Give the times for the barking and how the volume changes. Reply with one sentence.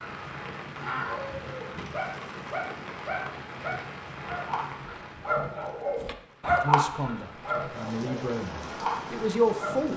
The barking can be heard from 0.0 to 9.9 s, getting louder then quieter.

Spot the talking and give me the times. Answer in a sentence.
You can hear the talking from 6.6 to 9.9 s.